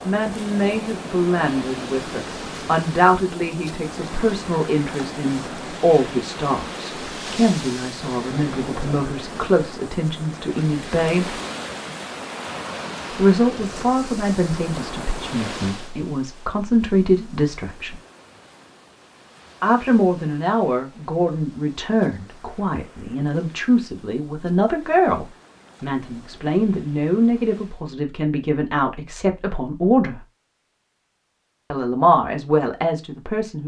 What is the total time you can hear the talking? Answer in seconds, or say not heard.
29 s.